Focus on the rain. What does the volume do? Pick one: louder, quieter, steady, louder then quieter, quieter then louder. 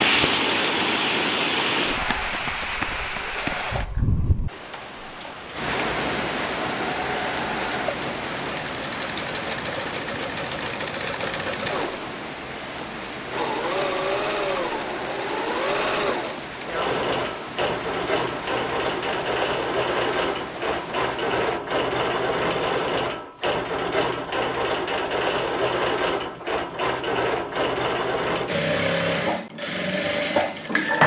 quieter.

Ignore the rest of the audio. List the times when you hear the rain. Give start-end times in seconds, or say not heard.
0.0-21.6.